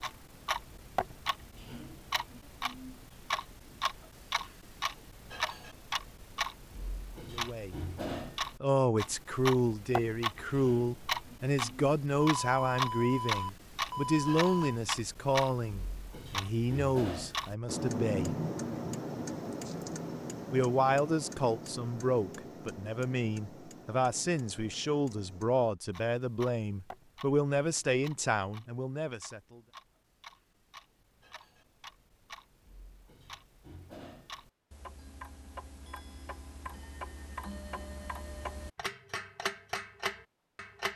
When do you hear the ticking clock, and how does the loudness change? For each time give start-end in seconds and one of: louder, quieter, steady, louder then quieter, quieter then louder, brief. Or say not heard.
0.0-40.9 quieter then louder.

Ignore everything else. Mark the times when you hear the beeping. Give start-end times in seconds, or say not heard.
12.2-14.8.